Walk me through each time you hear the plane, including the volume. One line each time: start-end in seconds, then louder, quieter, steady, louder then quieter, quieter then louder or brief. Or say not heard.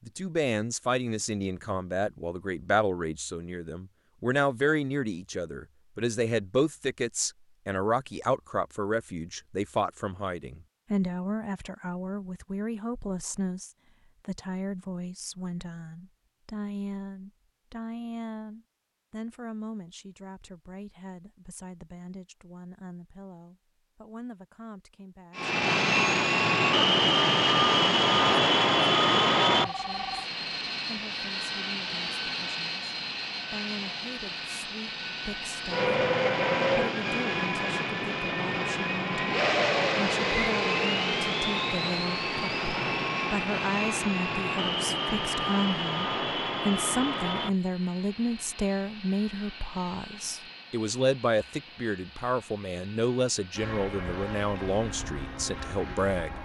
25.4-56.4 quieter.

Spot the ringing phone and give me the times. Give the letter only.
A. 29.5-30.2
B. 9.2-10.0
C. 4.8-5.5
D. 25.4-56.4
A.